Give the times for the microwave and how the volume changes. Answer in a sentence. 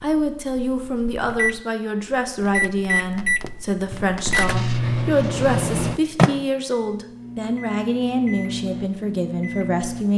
The microwave can be heard from 0.0 to 10.1 s, getting louder then quieter.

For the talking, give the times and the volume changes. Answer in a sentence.
You can hear the talking from 0.0 to 10.1 s, at a steady volume.